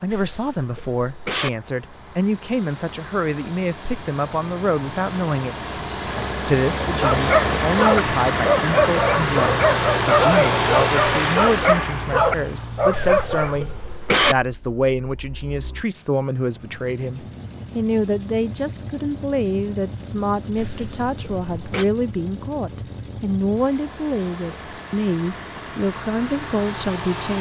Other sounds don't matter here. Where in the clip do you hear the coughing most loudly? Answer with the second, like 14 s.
14 s.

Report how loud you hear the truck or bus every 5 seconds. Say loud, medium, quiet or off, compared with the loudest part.
quiet, loud, loud, quiet, quiet, medium.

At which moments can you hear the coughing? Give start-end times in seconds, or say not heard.
0.1-1.5, 12.9-14.3, 20.6-21.9.